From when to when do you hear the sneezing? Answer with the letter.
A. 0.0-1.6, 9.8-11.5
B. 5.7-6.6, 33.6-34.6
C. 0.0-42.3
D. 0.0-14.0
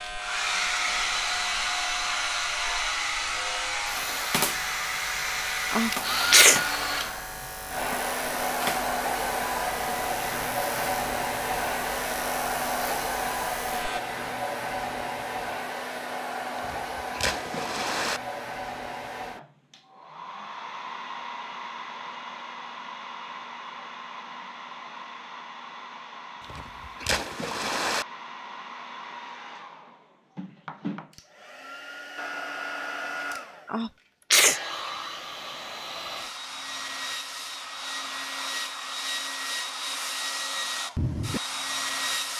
B.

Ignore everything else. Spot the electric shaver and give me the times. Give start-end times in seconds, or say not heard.
0.0-14.0.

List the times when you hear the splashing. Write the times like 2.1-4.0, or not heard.
16.6-18.2, 26.4-28.1.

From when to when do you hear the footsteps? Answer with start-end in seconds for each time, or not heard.
not heard.